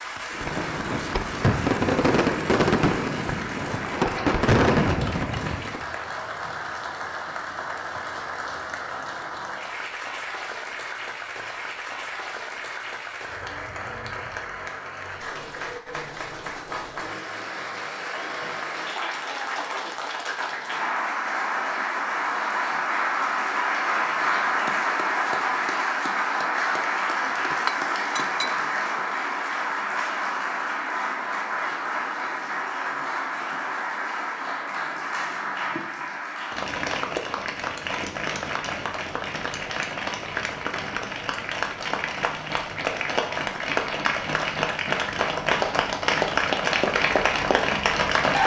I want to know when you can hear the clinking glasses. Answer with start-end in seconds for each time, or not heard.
27.2-28.6.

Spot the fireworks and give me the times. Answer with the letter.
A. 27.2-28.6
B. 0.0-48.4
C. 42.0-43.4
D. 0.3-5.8
D.